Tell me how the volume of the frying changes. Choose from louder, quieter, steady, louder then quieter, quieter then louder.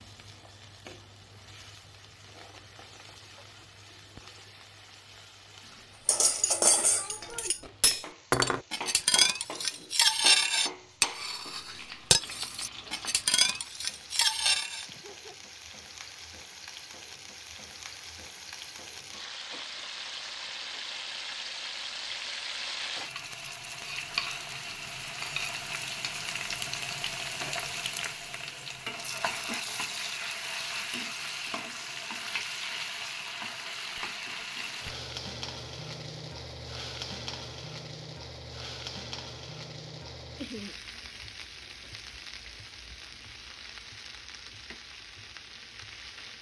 louder then quieter.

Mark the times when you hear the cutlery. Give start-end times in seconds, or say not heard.
6.0-14.8.